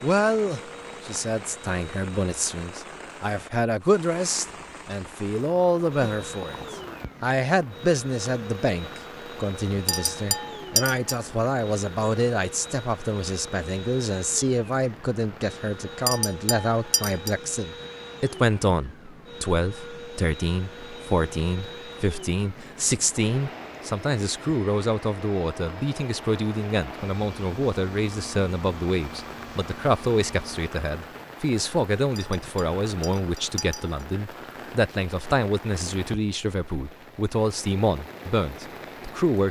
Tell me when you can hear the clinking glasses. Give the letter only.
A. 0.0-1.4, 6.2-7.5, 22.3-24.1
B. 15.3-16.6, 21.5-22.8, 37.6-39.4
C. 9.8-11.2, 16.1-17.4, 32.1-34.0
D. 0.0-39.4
C.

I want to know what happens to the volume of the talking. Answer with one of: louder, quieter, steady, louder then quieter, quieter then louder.
steady.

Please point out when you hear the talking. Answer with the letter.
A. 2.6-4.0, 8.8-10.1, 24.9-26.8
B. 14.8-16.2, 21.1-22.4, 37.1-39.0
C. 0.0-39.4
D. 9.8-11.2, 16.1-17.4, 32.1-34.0
C.